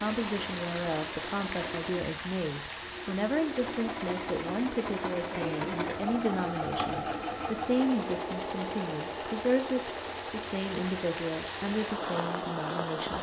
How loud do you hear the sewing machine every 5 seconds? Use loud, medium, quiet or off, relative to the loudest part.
medium, loud, medium.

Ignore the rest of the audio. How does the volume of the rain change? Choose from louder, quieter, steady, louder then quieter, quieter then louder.
quieter then louder.